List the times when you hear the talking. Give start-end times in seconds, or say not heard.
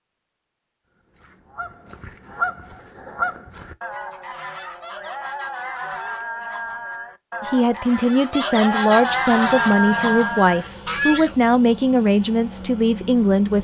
7.4-13.5.